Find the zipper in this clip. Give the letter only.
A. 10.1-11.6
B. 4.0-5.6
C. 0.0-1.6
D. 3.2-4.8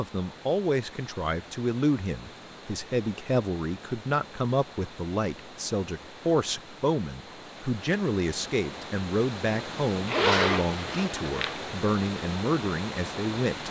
A.